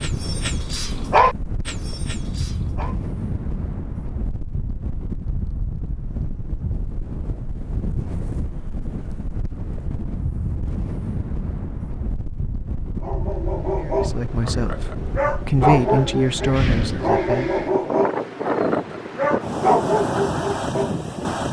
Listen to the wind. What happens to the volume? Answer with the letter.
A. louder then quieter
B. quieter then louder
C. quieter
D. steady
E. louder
E.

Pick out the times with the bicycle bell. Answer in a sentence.
The bicycle bell can't be heard in this clip.